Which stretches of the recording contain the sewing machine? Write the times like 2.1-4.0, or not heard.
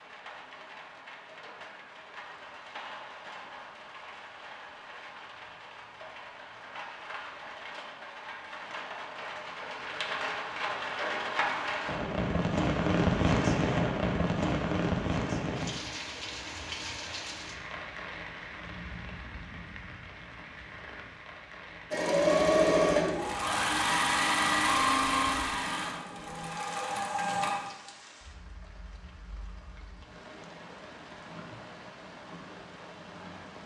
21.9-27.6.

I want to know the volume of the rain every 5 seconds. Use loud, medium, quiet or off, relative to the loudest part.
quiet, quiet, loud, medium, quiet, quiet, quiet.